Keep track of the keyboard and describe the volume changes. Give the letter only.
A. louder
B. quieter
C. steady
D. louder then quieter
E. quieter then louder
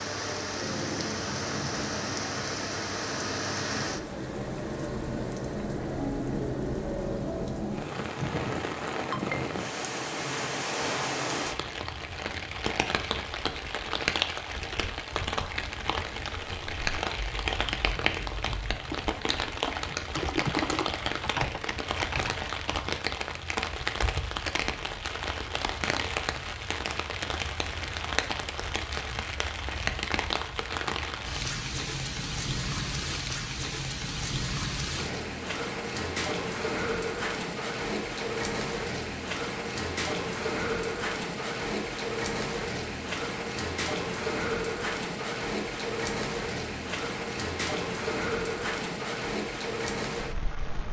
D.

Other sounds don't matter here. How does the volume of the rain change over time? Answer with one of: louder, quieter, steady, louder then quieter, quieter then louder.
steady.